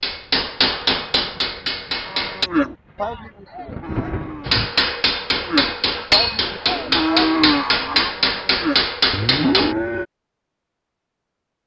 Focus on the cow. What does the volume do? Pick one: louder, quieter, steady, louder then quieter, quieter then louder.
quieter then louder.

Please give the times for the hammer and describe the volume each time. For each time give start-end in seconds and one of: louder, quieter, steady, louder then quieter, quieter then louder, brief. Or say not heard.
0.0-2.5 brief
4.5-9.8 steady.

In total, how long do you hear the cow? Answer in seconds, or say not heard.
8 s.